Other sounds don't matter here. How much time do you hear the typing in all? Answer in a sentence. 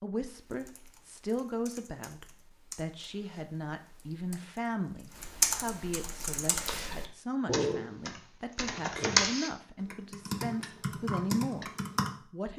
The typing can be heard for 12 seconds in total.